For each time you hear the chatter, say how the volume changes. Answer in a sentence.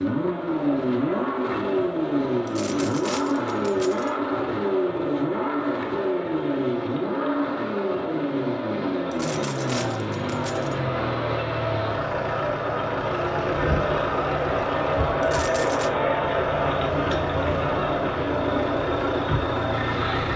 The chatter can be heard from 0.1 to 20.3 s, getting louder.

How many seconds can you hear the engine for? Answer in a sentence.
You can hear the engine for 20 seconds altogether.